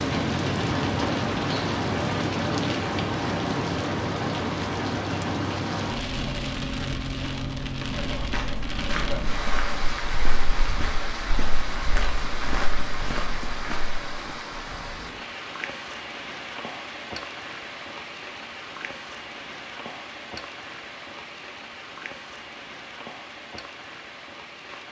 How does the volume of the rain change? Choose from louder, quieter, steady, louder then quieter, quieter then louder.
quieter.